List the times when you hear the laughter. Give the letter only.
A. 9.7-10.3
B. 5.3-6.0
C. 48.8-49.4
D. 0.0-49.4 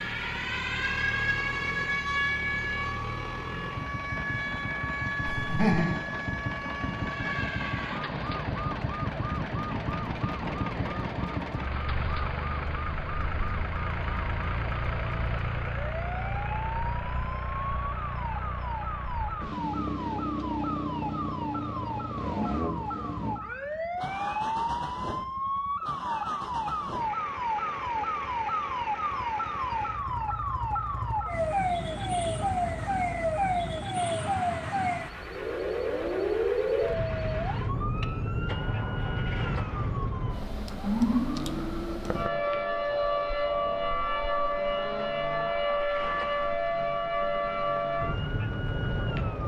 B.